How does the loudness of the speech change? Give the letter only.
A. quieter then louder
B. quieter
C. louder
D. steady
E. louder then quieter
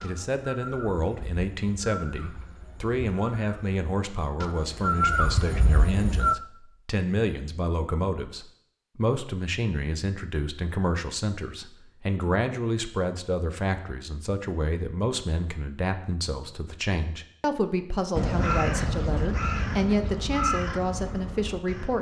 D.